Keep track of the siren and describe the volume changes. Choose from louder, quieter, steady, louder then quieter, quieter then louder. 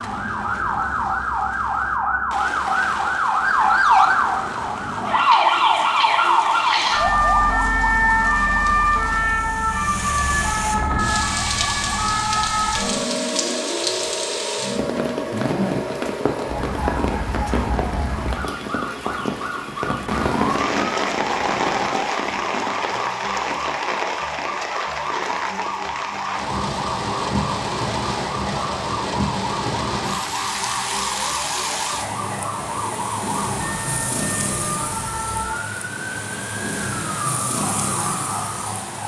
quieter.